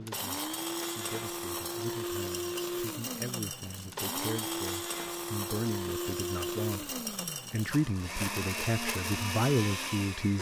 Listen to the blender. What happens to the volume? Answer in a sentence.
The volume of the blender stays about the same.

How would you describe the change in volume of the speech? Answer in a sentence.
The volume of the speech goes up.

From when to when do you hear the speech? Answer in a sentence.
The speech can be heard from 0.0 to 10.3 s.